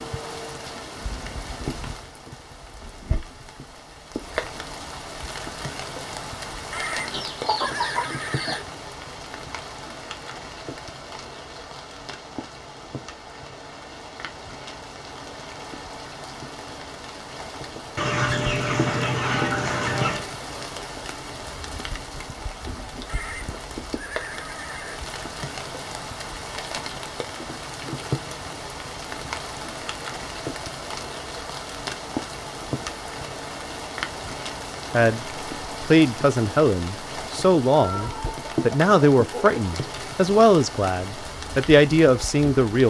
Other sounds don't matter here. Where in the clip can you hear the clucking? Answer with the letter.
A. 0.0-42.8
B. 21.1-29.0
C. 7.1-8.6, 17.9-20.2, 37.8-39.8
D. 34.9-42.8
C.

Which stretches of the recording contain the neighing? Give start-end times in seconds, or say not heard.
6.7-8.7, 23.1-25.0.